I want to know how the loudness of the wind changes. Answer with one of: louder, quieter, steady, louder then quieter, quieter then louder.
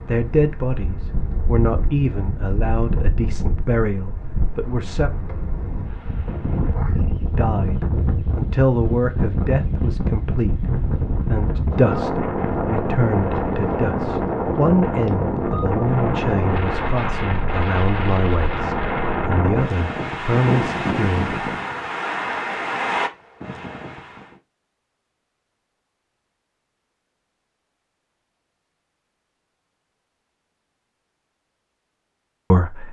louder.